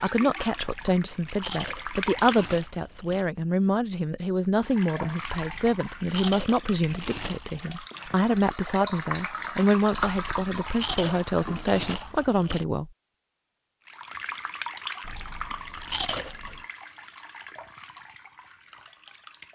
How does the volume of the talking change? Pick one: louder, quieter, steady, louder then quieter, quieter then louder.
steady.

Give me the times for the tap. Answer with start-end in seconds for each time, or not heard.
0.0-2.7, 4.6-12.3, 13.8-19.5.